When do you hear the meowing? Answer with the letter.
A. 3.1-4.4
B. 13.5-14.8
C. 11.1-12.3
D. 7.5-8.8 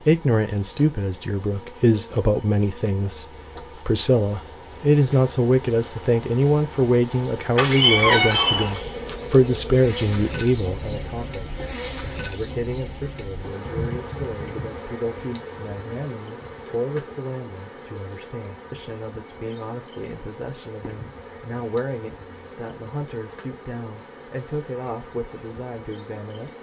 D.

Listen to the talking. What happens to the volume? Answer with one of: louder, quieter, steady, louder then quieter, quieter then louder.
quieter.